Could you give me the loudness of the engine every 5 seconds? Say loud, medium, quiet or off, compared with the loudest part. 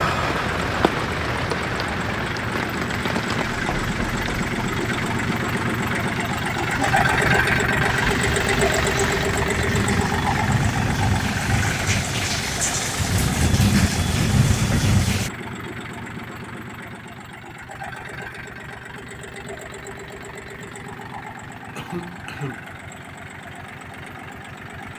medium, loud, medium, quiet, quiet.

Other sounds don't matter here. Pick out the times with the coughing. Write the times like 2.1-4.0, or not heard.
21.8-22.6.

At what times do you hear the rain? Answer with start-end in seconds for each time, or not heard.
0.0-15.3.